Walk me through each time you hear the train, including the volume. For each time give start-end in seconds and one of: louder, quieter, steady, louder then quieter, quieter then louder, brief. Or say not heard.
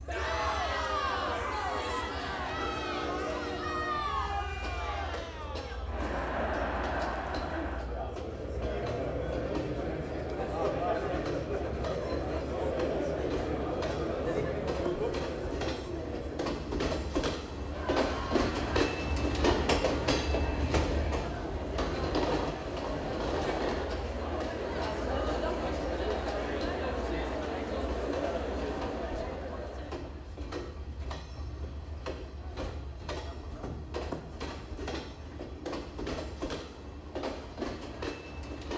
0.0-38.7 louder then quieter.